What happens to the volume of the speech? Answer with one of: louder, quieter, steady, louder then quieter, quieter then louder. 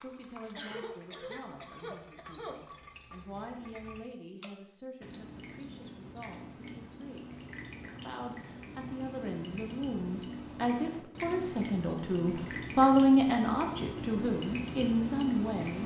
louder.